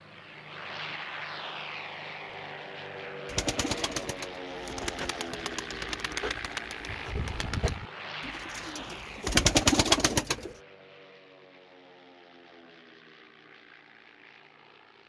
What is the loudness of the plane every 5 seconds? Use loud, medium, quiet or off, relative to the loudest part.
loud, loud, quiet.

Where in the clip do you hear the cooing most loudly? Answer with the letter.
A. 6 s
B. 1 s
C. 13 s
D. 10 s
D.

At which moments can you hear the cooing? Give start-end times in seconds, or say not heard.
3.2-10.5.